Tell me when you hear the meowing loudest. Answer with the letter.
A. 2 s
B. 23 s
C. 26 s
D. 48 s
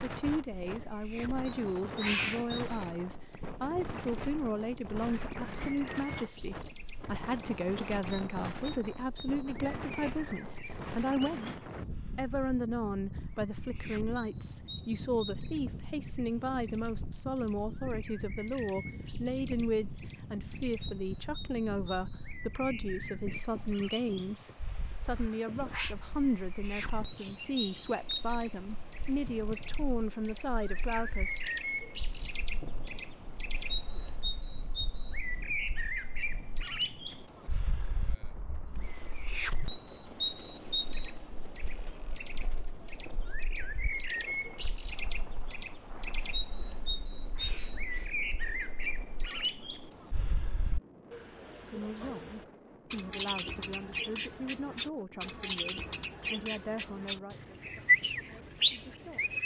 A.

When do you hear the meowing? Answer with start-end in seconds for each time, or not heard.
1.4-2.6, 25.1-25.9, 46.7-48.1.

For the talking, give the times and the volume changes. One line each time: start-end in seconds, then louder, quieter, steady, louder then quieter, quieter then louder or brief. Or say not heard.
0.0-31.4 steady
51.6-59.4 quieter.